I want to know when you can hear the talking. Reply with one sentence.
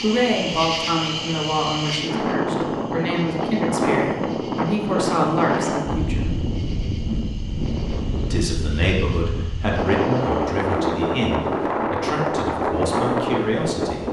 You can hear the talking from 0.0 to 6.3 s and from 8.3 to 14.0 s.